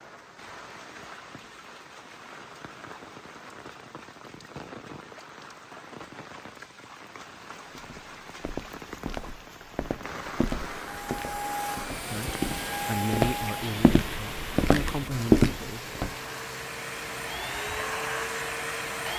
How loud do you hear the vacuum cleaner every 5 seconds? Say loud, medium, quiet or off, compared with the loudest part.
off, off, loud, loud.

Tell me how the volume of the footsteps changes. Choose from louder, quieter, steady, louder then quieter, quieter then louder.
louder.